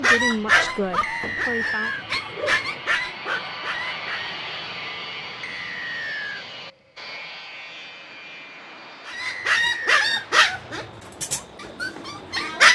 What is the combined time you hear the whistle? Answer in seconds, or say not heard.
3 s.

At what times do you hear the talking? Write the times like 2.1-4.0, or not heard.
0.0-1.9.